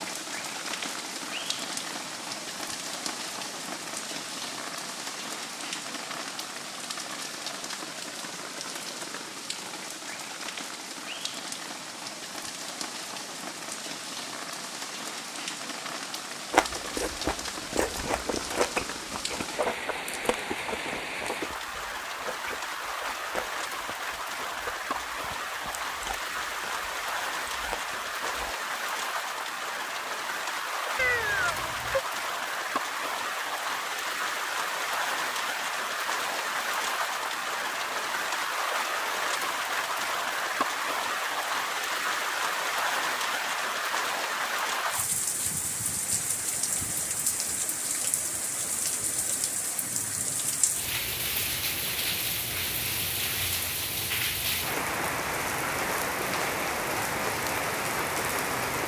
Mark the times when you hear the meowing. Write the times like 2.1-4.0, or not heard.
30.9-32.0.